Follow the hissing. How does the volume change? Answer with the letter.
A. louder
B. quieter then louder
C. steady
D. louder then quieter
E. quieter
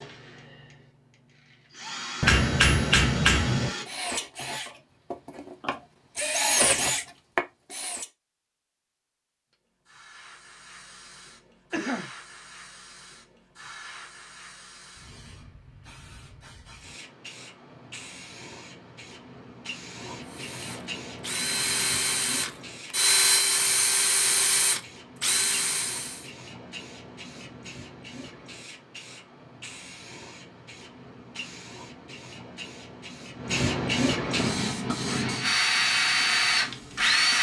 A.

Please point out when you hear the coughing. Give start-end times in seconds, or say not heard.
11.7-12.1.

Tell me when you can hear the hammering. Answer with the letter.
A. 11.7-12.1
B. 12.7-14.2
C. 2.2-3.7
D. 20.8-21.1
C.